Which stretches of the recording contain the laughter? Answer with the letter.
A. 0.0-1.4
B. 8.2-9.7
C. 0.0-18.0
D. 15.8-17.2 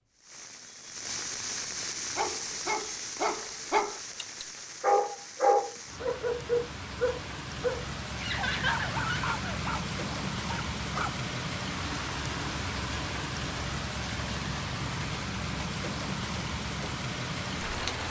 B.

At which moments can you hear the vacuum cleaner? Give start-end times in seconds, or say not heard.
not heard.